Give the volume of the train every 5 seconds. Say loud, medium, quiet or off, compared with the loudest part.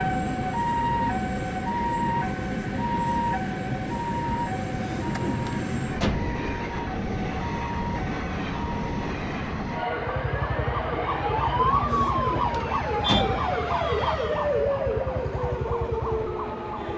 loud, loud, medium, medium.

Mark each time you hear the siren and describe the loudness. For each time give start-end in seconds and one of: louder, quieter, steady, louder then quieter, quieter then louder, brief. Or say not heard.
0.0-16.9 quieter then louder.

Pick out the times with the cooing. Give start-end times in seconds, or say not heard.
4.8-6.4, 11.8-13.5.